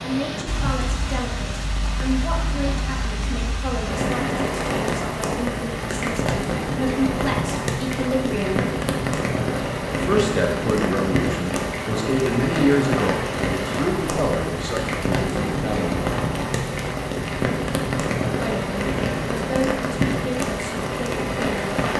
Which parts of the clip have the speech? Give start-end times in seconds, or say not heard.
0.0-8.7, 9.9-16.1, 18.4-21.8.